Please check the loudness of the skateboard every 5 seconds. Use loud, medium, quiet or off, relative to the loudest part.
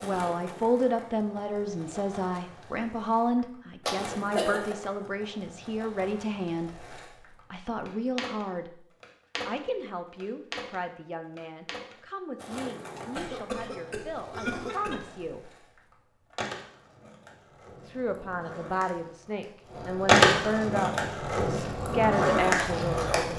quiet, quiet, quiet, quiet, loud.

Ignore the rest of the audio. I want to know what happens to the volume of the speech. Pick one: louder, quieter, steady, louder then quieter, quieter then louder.
quieter then louder.